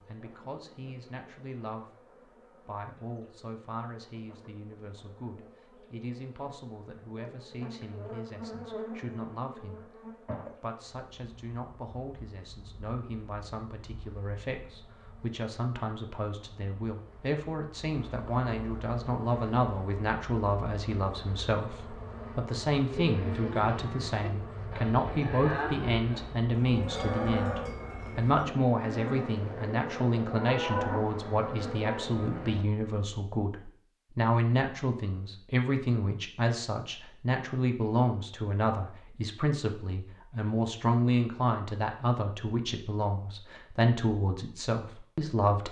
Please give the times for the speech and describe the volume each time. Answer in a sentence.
The speech can be heard briefly from 0.1 to 1.9 s; and from 2.6 to 45.6 s, getting louder.